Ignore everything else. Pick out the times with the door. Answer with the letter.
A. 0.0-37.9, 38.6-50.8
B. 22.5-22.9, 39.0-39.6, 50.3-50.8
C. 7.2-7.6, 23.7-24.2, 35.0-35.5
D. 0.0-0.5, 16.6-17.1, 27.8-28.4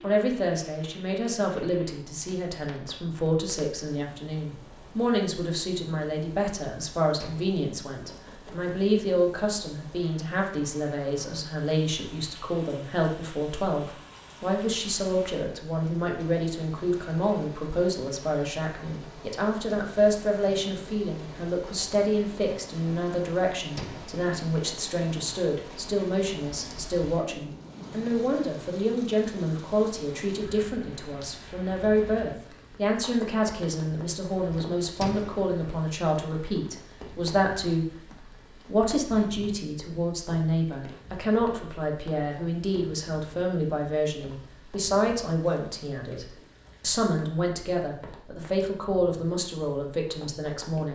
C.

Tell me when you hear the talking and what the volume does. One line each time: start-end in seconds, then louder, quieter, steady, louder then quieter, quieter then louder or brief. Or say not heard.
0.0-37.9 steady
38.6-50.8 steady.